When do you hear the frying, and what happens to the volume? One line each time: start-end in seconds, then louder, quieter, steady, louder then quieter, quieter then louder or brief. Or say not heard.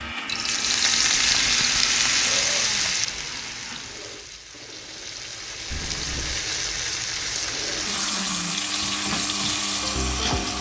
0.0-10.5 quieter then louder.